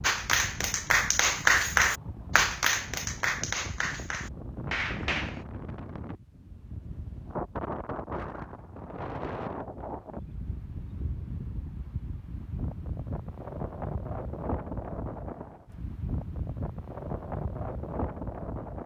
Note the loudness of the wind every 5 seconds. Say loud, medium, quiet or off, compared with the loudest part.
medium, loud, loud, loud.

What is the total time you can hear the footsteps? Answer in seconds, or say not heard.
not heard.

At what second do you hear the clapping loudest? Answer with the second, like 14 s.
2 s.